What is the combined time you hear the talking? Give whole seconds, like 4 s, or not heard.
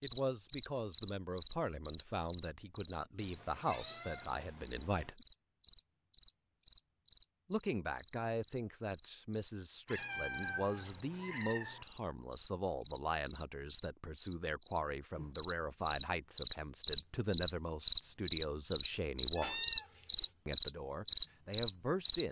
19 s.